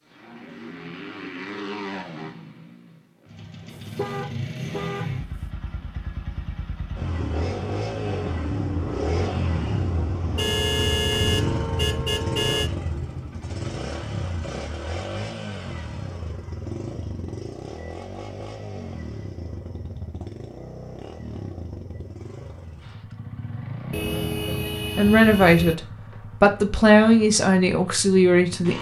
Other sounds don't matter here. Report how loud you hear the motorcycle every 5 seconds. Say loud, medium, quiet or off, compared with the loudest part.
medium, loud, loud, medium, medium, medium.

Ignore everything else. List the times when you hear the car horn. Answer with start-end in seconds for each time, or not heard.
3.7-5.5, 10.3-12.7, 23.9-25.8.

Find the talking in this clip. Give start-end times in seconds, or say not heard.
24.9-28.7.